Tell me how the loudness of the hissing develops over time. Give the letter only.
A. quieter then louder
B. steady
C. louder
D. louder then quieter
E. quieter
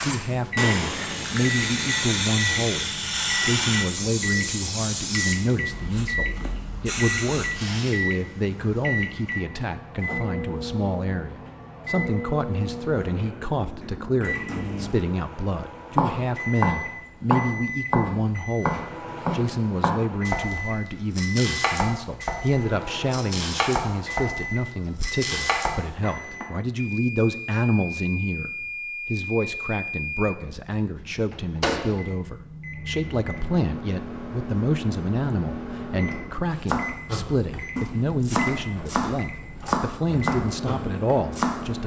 E.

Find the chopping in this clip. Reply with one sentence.
You can hear the chopping from 15.9 to 26.4 s and from 36.6 to 41.8 s.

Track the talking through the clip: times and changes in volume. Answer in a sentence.
The talking can be heard from 0.0 to 41.8 s, at a steady volume.